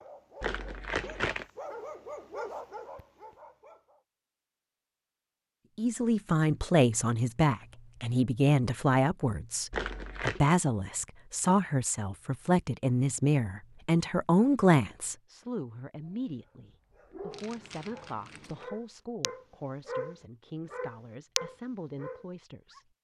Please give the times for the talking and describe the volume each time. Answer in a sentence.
You can hear the talking from 5.8 to 22.9 s, getting quieter.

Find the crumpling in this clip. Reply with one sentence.
You can hear the crumpling from 0.4 to 1.4 s, from 9.7 to 10.4 s and from 17.3 to 18.6 s.